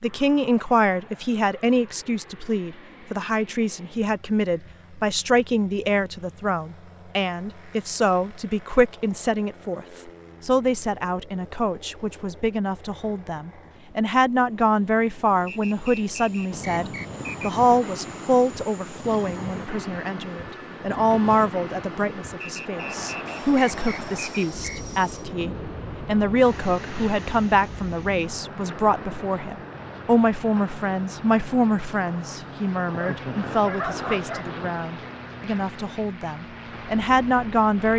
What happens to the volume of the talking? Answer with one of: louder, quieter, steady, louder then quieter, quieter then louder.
steady.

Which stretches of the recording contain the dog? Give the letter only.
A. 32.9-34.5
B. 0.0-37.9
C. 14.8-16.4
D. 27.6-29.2
A.